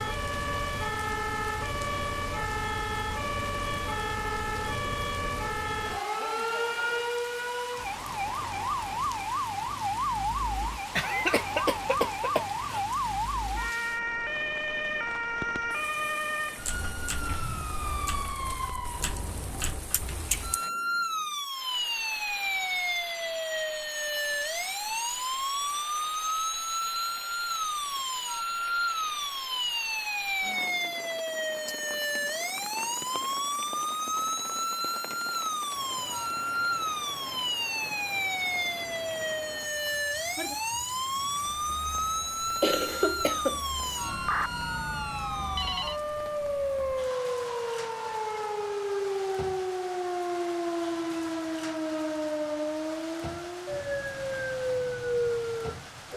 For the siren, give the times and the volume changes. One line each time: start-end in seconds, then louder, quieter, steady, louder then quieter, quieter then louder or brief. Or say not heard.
0.0-56.1 steady.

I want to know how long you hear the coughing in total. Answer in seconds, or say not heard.
3 s.